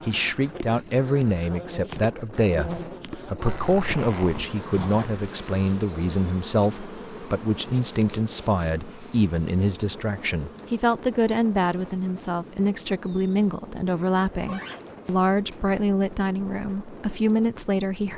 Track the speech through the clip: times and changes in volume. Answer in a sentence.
The speech can be heard from 0.0 to 18.1 s, at a steady volume.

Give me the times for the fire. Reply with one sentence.
The fire can't be heard in this clip.